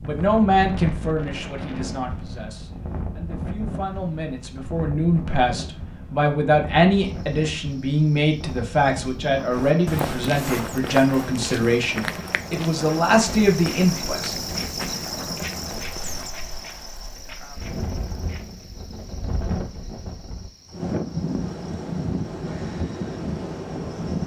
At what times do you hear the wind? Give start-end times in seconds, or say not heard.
0.0-24.2.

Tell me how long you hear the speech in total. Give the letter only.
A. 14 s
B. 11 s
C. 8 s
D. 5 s
A.